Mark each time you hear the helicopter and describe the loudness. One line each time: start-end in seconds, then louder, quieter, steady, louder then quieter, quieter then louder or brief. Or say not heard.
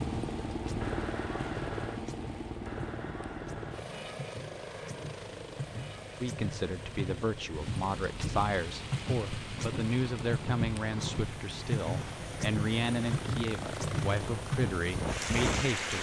0.0-15.9 quieter then louder.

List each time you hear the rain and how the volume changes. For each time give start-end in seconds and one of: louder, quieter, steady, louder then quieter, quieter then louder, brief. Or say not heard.
0.0-15.9 louder.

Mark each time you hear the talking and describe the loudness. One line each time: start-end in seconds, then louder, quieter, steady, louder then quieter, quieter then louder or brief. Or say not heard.
6.2-15.9 steady.